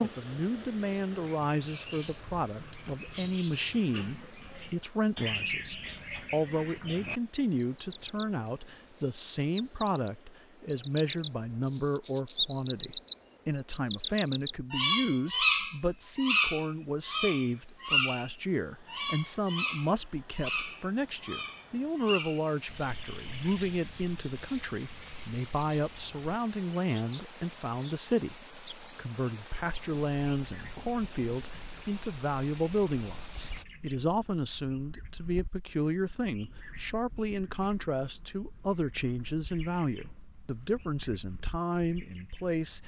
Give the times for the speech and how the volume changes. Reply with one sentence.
You can hear the speech from 0.0 to 42.8 s, at a steady volume.